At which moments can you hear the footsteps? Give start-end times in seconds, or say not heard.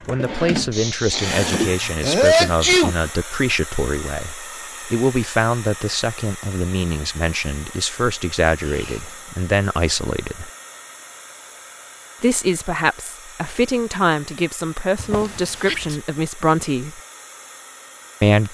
not heard.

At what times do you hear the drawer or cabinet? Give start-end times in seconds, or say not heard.
0.1-1.8, 14.9-15.9.